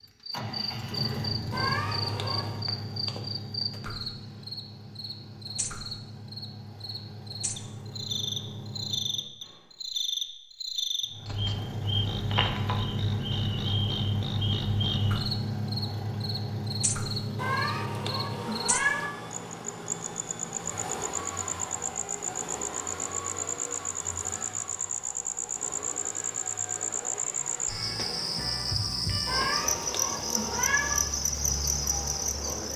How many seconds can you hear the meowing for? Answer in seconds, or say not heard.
5 s.